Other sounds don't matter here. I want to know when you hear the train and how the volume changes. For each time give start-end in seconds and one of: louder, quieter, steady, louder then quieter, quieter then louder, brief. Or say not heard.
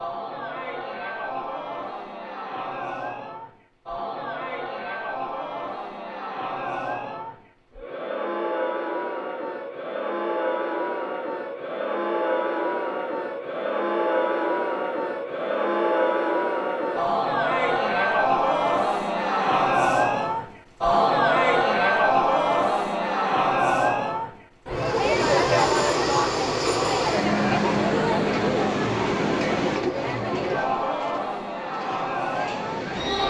24.7-33.2 quieter.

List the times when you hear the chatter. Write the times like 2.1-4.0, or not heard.
0.0-33.2.